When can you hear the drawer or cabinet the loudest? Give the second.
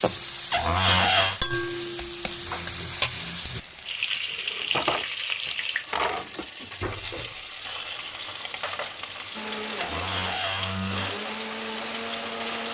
1 s.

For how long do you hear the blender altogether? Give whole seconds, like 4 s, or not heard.
3 s.